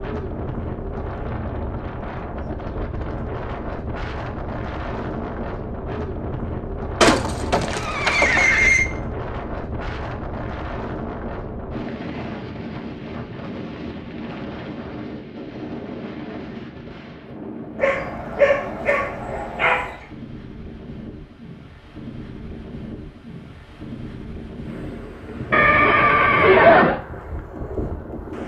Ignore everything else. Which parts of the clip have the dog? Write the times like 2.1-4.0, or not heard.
17.8-20.1.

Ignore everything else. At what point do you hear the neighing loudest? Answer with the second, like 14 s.
27 s.